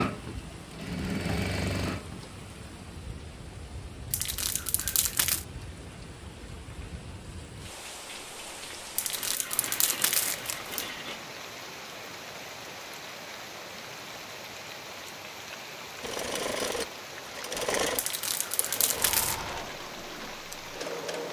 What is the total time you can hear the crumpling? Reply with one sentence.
You can hear the crumpling for 5 seconds altogether.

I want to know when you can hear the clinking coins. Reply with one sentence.
You can hear the clinking coins from 9.2 to 11.2 s.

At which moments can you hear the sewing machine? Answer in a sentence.
The sewing machine can be heard from 0.0 to 2.2 s and from 16.0 to 21.2 s.